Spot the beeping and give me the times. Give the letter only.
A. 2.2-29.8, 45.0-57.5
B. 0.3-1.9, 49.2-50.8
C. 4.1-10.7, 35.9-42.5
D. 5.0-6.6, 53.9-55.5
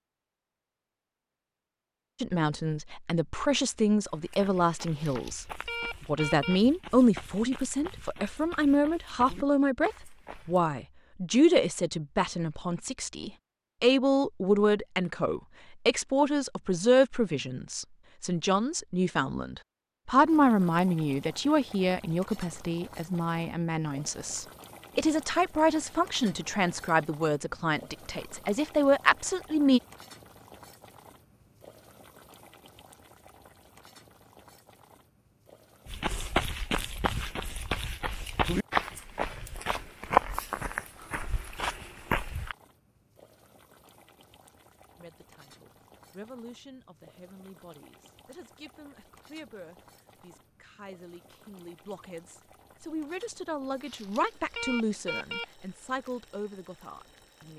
D.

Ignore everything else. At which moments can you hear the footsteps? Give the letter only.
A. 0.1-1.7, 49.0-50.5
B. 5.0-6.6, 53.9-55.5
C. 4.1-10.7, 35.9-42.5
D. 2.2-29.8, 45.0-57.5
C.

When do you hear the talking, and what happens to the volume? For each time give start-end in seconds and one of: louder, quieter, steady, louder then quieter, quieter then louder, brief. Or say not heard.
2.2-29.8 steady
45.0-57.5 louder.